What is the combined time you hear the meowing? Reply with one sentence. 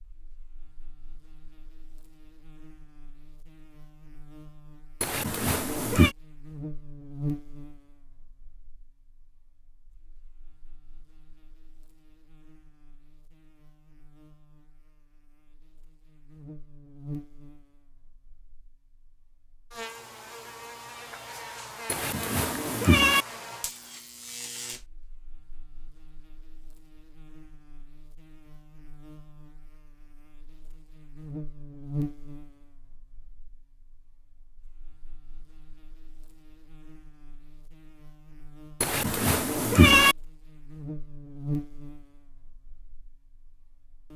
You can hear the meowing for 4 seconds altogether.